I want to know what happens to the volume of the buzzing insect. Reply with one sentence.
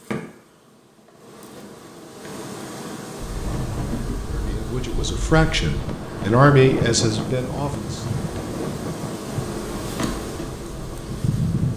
The volume of the buzzing insect goes up.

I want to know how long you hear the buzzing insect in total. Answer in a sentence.
The buzzing insect can be heard for 12 seconds in total.